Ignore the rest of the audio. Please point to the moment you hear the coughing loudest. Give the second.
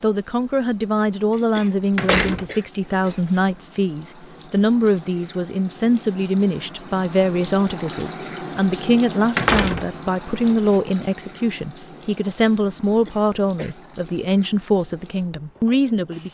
2 s.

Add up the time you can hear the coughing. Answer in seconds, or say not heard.
3 s.